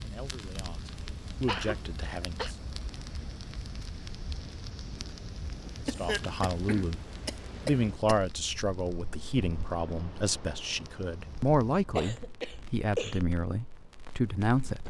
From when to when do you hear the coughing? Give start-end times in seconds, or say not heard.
1.4-2.5, 5.8-8.2, 11.9-13.2.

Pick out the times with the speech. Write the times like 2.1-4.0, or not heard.
0.0-2.5, 5.8-7.0, 7.7-14.8.